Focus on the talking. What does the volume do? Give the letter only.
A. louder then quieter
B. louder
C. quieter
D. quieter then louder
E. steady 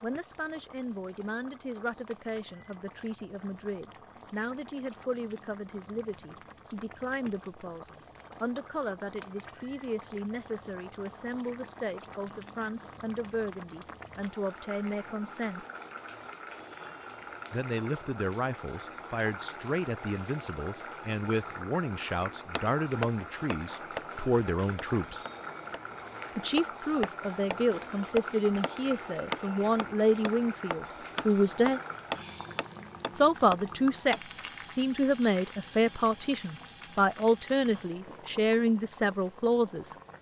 B.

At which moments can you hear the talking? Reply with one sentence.
You can hear the talking from 0.0 to 15.7 s, from 17.5 to 25.2 s, from 26.4 to 31.8 s and from 33.1 to 40.0 s.